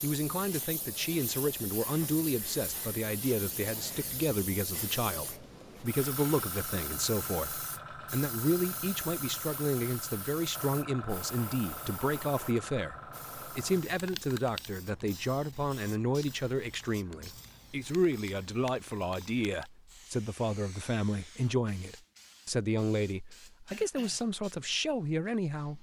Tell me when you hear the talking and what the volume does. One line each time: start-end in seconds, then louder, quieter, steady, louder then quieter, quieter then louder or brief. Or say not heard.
0.0-25.7 steady.